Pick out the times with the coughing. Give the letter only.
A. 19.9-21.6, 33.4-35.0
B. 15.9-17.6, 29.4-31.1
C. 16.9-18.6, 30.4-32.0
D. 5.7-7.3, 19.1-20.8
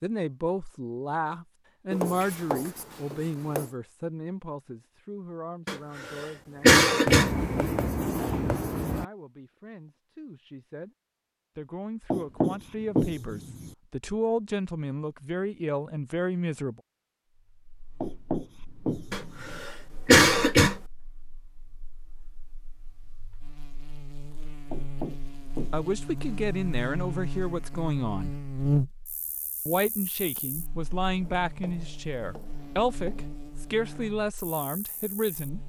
D.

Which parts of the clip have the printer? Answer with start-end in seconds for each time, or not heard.
not heard.